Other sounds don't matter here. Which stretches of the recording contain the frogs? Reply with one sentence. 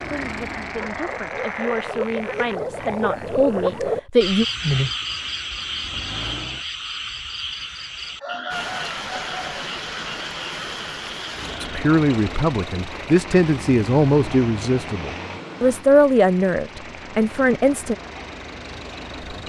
You can hear the frogs from 0.0 to 11.8 s.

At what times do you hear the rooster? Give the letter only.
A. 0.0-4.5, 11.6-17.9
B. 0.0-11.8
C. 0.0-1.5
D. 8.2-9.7
D.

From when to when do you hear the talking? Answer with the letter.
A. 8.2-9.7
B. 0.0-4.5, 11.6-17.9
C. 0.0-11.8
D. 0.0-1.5
B.